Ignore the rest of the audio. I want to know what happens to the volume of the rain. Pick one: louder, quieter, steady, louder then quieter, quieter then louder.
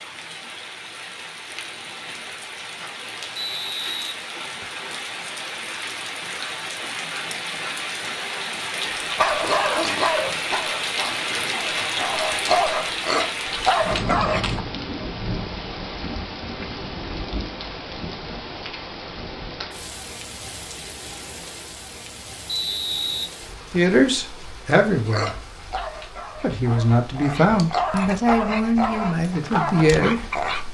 louder then quieter.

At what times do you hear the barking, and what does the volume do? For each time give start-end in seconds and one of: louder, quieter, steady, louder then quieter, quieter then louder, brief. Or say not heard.
9.2-14.7 quieter then louder
24.9-30.6 louder.